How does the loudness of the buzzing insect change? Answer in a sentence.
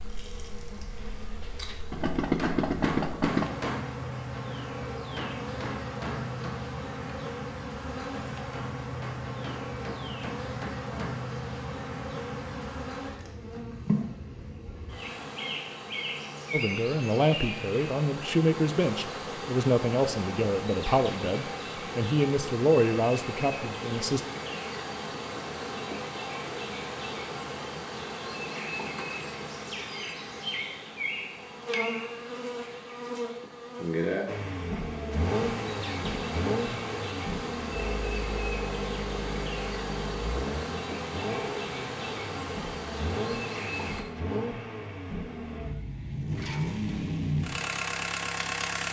The volume of the buzzing insect stays about the same.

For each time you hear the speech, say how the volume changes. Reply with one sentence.
The speech can be heard from 16.5 to 24.2 s, at a steady volume.